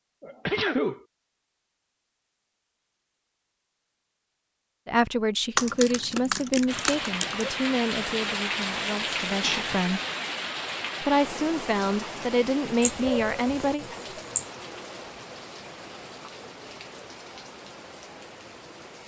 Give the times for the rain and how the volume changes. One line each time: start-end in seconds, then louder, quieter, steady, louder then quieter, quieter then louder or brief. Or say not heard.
6.7-19.0 quieter.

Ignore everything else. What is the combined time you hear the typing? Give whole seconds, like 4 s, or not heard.
2 s.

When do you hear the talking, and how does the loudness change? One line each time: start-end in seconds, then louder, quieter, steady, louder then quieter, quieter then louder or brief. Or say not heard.
4.8-10.0 quieter
11.0-13.8 brief.